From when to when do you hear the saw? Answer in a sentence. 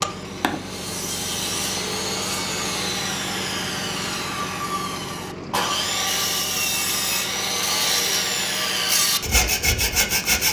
You can hear the saw from 0.0 to 10.4 s.